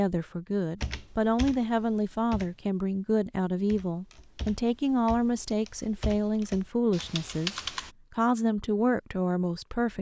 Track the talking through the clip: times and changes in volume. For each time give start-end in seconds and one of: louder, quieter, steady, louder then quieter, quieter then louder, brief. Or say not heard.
0.0-9.9 steady.